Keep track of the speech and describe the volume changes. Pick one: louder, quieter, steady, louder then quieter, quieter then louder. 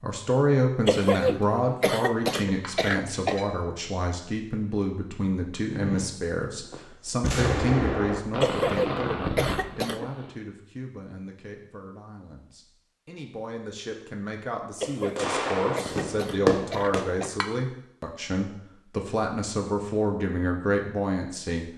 quieter then louder.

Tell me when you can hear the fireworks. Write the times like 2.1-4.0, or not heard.
5.7-10.3, 15.2-17.1.